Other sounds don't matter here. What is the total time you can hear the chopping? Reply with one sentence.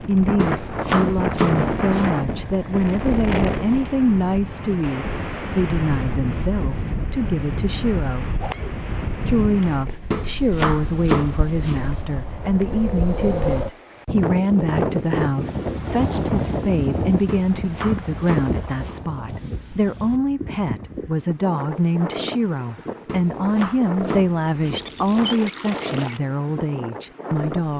The chopping can be heard for 8 seconds in total.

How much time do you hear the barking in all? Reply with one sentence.
The barking can't be heard in this clip.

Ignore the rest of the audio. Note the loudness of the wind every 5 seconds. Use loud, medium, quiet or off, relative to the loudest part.
loud, loud, loud, loud, medium, medium.